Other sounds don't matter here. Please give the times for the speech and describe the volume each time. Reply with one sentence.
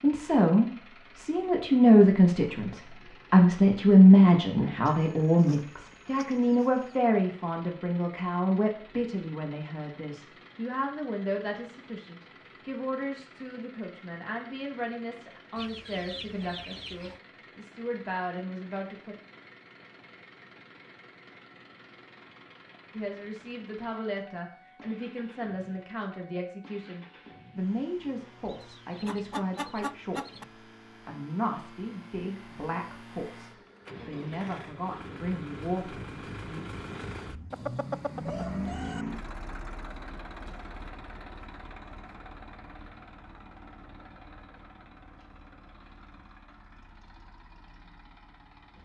The speech can be heard from 0.0 to 19.1 s, getting quieter; and from 22.9 to 36.6 s, at a steady volume.